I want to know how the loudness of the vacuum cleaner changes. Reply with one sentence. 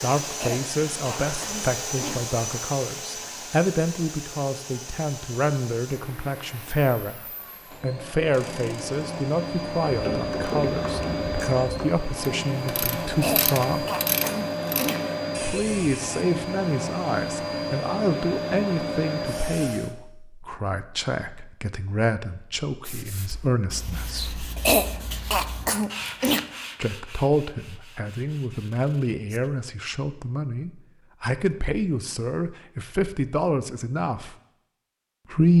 The loudness of the vacuum cleaner goes down, then up.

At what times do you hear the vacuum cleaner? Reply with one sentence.
You can hear the vacuum cleaner from 0.0 to 19.9 s.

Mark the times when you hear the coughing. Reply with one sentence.
The coughing can be heard from 0.3 to 2.1 s, from 13.1 to 15.0 s and from 24.6 to 26.4 s.